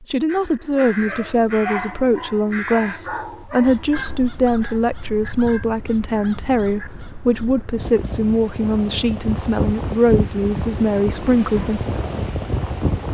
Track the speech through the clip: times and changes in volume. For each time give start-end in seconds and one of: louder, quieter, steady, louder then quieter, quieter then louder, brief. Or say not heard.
0.0-11.8 steady.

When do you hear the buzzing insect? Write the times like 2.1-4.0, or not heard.
not heard.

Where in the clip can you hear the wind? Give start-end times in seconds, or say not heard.
3.9-13.0.